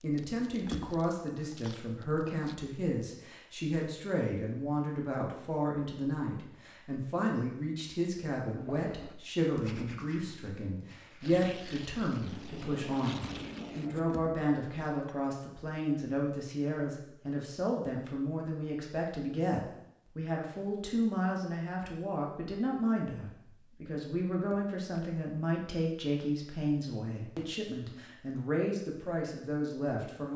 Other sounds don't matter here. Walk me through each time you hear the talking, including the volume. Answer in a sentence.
The talking can be heard from 0.0 to 30.3 s, at a steady volume.